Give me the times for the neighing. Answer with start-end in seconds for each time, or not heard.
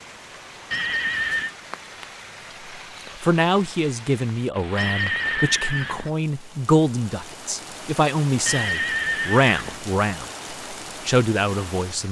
0.7-1.5, 4.8-6.1, 8.4-9.8.